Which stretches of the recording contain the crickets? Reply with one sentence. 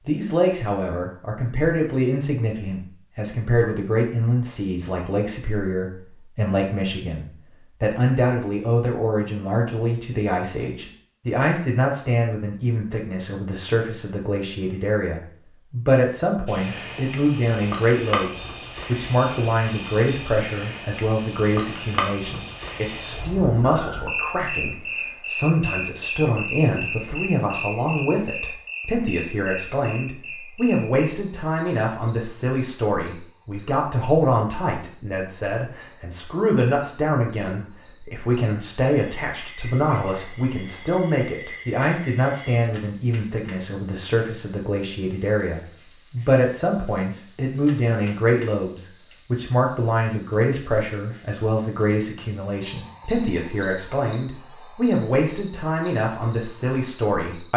The crickets can be heard from 16.4 to 57.5 s.